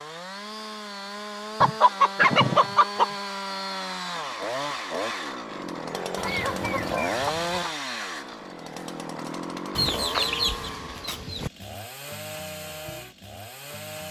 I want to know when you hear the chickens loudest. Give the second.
2 s.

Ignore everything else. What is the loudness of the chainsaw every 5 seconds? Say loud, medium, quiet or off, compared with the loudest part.
loud, loud, medium.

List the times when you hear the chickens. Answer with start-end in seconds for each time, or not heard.
1.6-3.1, 6.2-7.8, 9.8-11.5.